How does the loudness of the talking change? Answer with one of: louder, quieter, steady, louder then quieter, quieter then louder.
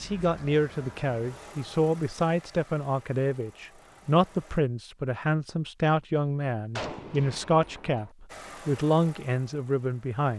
steady.